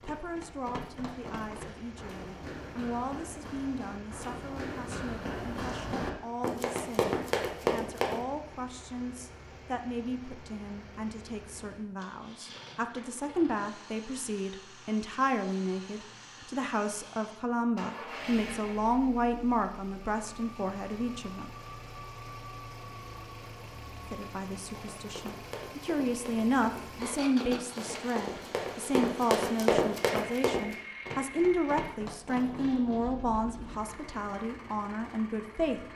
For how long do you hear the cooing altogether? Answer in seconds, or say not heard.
not heard.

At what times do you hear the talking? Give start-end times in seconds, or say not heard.
0.0-21.5, 24.1-35.9.